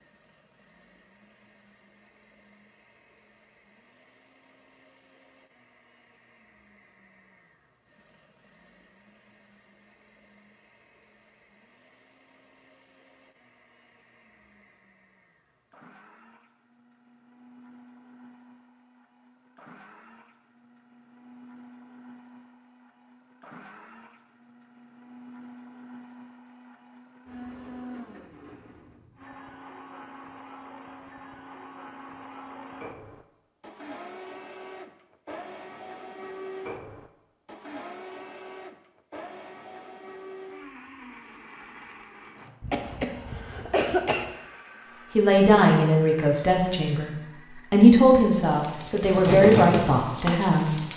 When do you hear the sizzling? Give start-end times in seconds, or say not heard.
48.4-50.9.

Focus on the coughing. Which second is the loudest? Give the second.
44 s.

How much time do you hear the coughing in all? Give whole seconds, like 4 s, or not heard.
2 s.